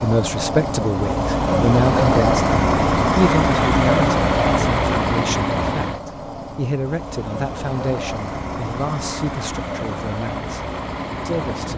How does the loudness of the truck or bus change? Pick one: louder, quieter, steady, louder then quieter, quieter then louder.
quieter.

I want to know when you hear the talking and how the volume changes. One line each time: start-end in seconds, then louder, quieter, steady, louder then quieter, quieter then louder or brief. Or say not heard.
0.0-10.7 quieter
11.2-11.7 brief.